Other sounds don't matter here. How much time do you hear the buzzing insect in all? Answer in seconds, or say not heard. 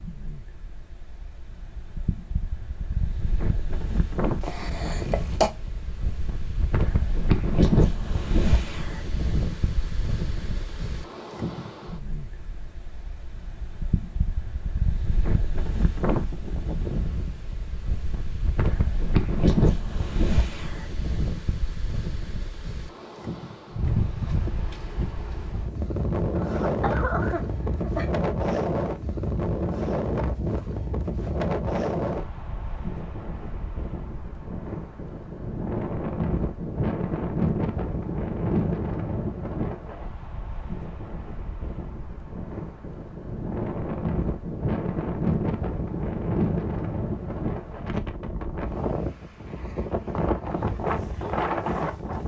not heard.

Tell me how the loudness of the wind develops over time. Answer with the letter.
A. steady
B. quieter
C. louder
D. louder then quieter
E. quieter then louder
A.